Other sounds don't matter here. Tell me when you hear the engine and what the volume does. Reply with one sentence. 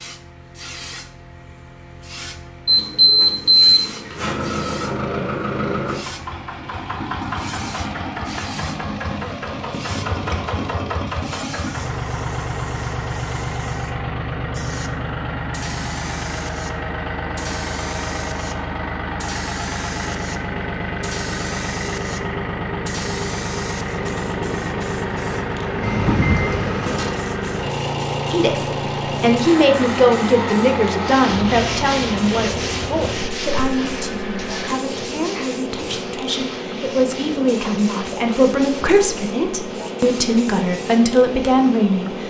You can hear the engine from 4.2 to 34.8 s, at a steady volume.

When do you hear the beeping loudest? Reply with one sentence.
The volume of the beeping peaks at 4 seconds.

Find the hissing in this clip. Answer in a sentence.
The hissing can be heard from 0.0 to 42.2 s.